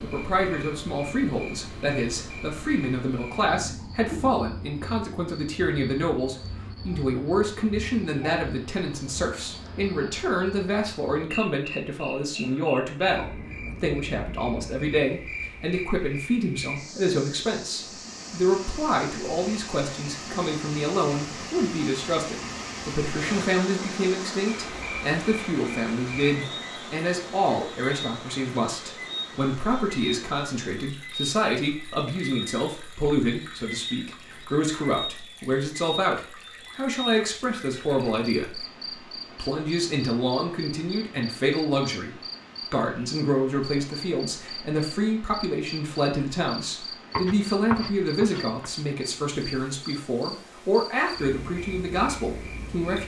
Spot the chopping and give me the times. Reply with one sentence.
The chopping can be heard from 47.1 to 48.5 s.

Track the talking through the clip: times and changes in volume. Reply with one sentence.
The talking can be heard from 0.0 to 53.0 s, at a steady volume.